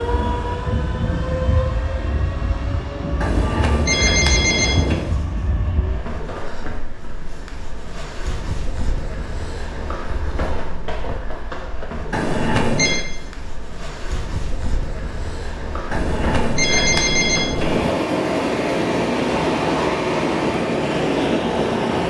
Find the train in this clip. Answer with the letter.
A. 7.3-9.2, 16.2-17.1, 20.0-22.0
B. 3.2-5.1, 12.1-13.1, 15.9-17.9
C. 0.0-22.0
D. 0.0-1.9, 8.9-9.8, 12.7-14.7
C.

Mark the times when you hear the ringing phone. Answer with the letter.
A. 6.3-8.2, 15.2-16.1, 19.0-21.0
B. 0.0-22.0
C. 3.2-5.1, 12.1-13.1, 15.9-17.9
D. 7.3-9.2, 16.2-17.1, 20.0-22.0
C.